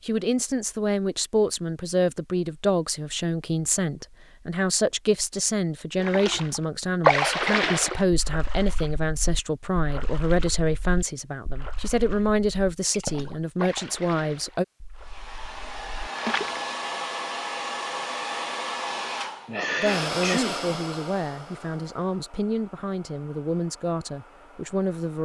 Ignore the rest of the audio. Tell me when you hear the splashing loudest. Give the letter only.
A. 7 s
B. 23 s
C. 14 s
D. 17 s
A.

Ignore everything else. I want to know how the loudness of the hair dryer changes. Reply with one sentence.
The volume of the hair dryer goes down.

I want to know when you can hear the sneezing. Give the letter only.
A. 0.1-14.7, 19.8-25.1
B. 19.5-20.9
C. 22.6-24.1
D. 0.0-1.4
B.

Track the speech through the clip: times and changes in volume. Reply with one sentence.
The speech can be heard from 0.1 to 14.7 s, at a steady volume; and from 19.8 to 25.1 s, at a steady volume.